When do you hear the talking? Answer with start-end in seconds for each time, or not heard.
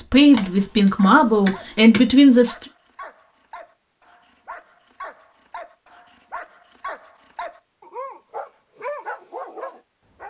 0.0-2.6.